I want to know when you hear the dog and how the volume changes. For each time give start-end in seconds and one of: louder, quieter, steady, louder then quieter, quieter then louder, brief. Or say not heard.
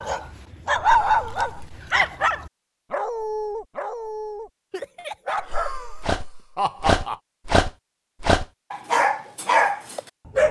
0.0-10.4 quieter then louder.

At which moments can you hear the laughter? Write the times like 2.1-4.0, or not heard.
0.8-2.3, 5.3-7.2.